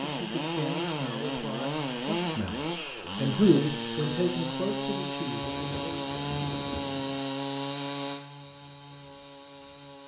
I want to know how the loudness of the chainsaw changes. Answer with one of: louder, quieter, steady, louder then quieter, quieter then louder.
quieter.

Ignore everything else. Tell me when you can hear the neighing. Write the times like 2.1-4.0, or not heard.
not heard.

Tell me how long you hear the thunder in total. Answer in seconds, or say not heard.
2 s.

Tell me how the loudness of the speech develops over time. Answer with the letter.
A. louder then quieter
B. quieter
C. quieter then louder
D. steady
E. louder
A.